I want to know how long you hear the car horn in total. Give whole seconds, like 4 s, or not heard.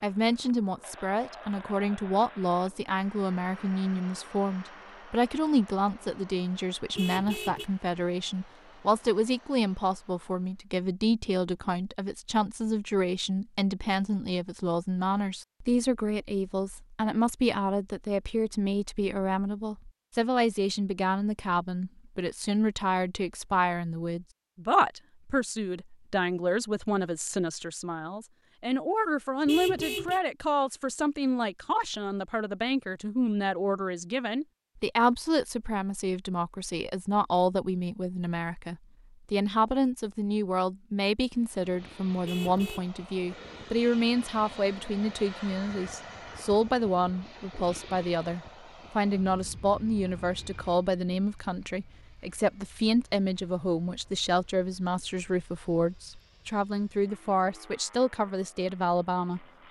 2 s.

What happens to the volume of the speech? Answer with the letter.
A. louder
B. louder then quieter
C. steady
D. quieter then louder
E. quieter
C.